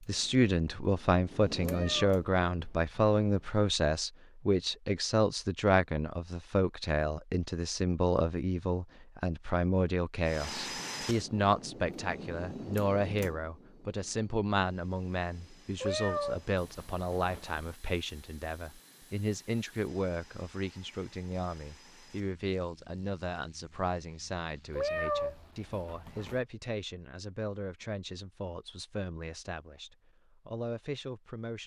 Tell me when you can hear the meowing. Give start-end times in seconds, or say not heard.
1.6-3.6, 15.8-17.7, 24.8-26.4.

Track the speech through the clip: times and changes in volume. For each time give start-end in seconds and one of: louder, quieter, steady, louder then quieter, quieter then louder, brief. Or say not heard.
0.1-31.6 quieter.